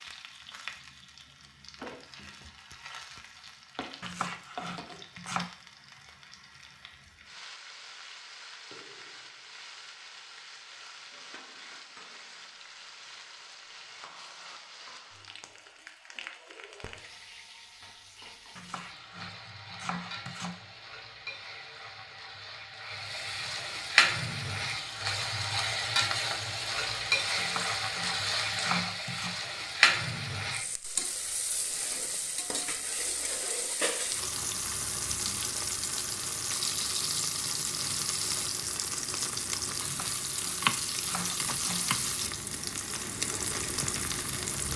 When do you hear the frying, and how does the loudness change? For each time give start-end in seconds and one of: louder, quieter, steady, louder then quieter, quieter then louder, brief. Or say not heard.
0.0-44.7 louder.